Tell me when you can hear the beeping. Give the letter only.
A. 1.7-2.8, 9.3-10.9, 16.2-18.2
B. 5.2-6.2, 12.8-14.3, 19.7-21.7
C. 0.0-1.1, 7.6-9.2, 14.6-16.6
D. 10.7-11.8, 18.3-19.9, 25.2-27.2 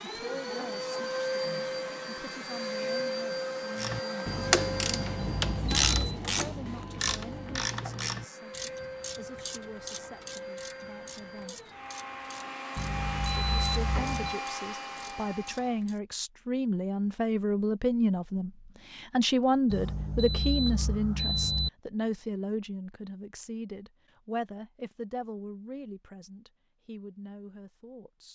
B.